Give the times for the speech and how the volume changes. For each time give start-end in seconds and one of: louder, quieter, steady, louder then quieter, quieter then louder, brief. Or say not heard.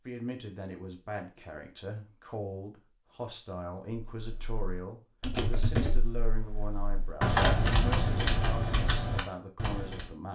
0.1-10.3 steady.